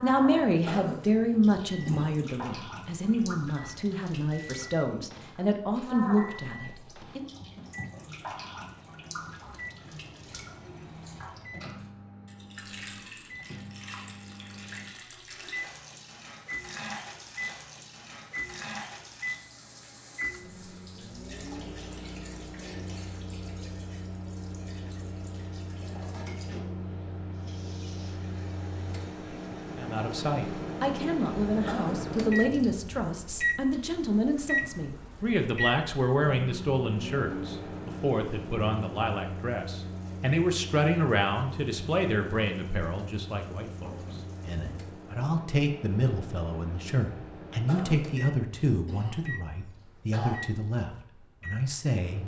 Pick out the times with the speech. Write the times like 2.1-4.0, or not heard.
0.0-7.2, 29.8-52.2.